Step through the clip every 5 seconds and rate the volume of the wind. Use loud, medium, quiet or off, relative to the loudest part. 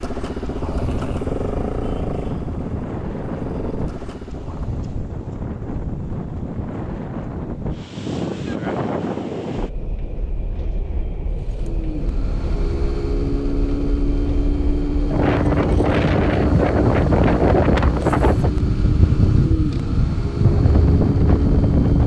medium, medium, quiet, loud, loud.